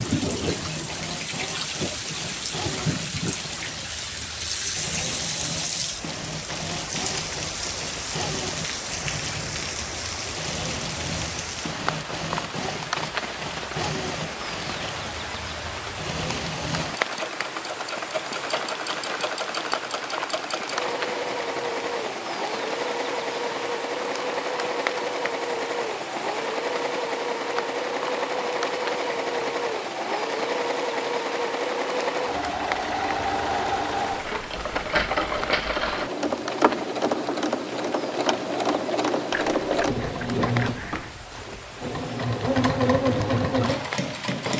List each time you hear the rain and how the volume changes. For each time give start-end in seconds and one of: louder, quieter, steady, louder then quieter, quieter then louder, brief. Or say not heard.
0.0-44.5 quieter.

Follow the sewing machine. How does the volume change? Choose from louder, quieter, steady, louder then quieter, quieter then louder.
louder.